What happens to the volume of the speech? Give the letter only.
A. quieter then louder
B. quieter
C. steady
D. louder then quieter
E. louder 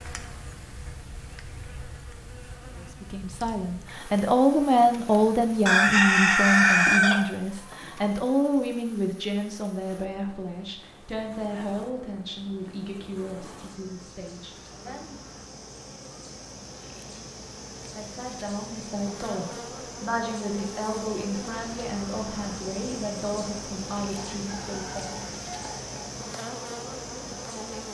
B.